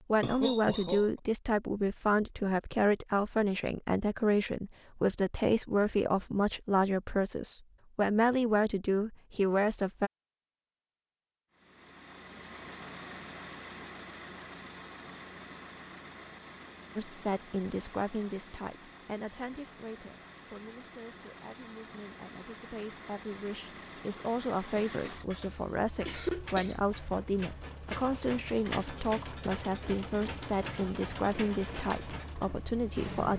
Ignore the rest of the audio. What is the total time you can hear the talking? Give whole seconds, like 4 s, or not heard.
26 s.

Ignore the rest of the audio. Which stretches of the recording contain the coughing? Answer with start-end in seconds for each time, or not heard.
0.2-1.2, 24.8-25.2, 26.1-26.8.